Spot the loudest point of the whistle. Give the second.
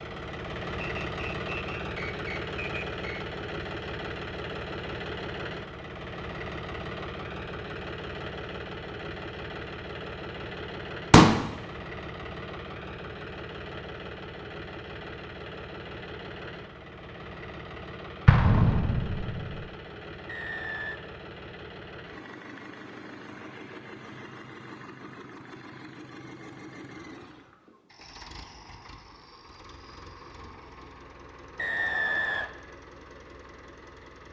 32 s.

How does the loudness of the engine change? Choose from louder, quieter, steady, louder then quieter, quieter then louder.
quieter.